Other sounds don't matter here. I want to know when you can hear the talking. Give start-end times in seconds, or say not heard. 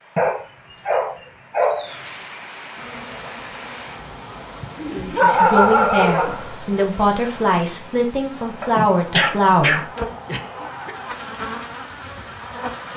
4.9-9.8.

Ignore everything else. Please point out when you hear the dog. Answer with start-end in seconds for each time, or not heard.
0.1-1.9, 4.8-6.6, 8.6-10.9.